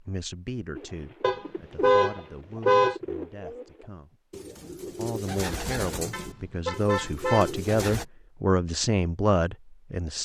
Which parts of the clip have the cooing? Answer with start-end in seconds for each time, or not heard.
0.8-8.1.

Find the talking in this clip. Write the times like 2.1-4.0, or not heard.
0.0-4.2, 4.9-10.1.